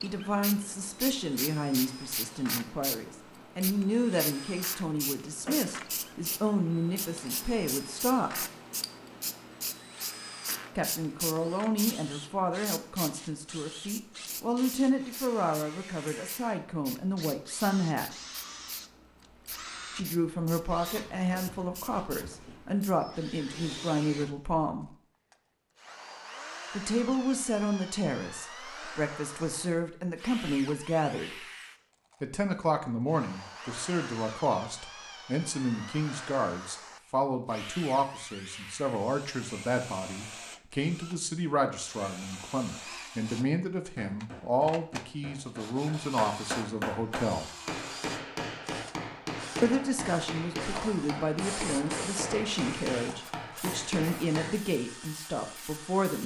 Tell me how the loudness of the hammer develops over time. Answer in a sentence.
The volume of the hammer goes up.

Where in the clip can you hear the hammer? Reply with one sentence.
The hammer can be heard from 43.8 to 54.7 s.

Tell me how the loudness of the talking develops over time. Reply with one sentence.
The loudness of the talking stays about the same.